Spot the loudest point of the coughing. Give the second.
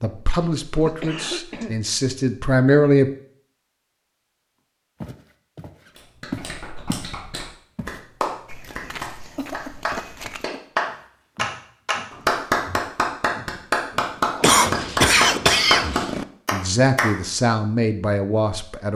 15 s.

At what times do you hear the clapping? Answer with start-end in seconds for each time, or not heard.
6.0-17.1.